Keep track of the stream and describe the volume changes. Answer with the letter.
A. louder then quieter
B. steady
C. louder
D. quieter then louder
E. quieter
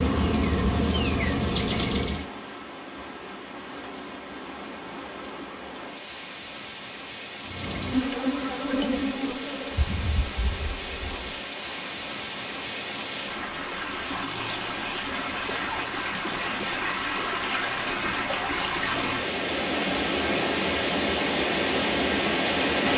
C.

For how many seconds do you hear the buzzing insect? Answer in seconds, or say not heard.
6 s.